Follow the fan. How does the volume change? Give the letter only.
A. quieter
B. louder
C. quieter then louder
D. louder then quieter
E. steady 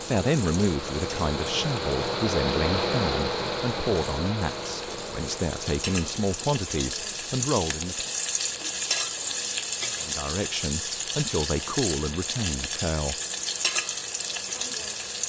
A.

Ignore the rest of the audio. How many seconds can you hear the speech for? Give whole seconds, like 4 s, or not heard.
11 s.